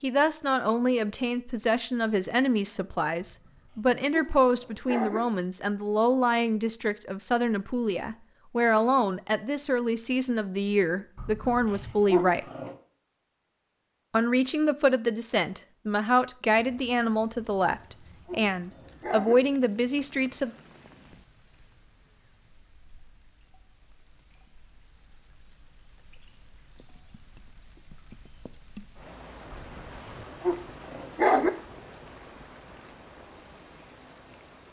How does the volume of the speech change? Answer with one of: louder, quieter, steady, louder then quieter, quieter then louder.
steady.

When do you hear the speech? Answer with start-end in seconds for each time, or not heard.
0.0-12.4, 14.1-20.5.